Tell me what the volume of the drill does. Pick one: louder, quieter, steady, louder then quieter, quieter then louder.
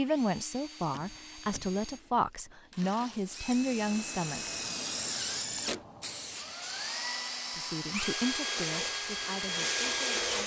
louder.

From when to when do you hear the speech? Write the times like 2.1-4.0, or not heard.
0.0-4.8, 7.5-10.4.